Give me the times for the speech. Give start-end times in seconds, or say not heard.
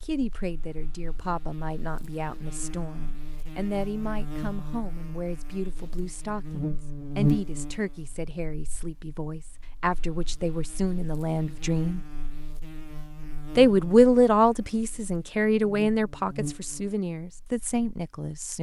0.0-12.0, 13.6-18.5.